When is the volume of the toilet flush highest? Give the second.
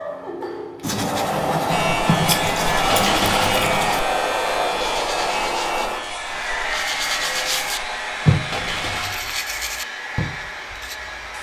3 s.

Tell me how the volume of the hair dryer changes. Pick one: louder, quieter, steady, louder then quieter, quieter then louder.
quieter.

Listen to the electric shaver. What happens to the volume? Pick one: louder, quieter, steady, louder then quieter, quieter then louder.
quieter.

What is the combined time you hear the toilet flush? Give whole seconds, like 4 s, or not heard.
2 s.